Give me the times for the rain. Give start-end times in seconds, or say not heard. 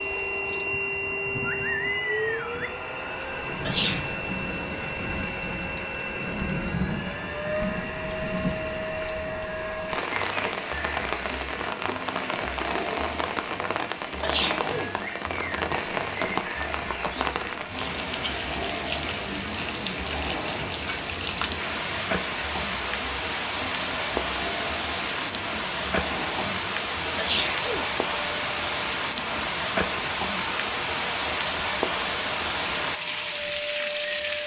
0.0-34.4.